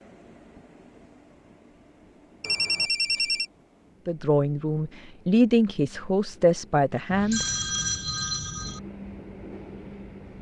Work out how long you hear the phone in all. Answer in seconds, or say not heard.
3 s.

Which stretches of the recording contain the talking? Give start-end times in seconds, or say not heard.
4.0-7.5.